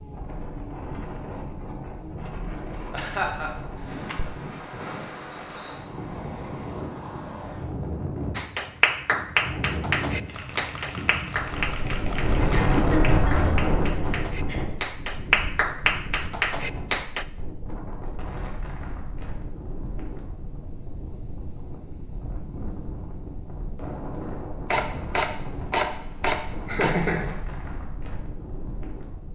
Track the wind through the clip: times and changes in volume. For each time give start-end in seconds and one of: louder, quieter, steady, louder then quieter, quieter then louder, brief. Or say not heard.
0.0-29.3 louder then quieter.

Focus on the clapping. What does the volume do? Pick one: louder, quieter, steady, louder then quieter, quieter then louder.
quieter then louder.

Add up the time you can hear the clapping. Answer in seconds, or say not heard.
9 s.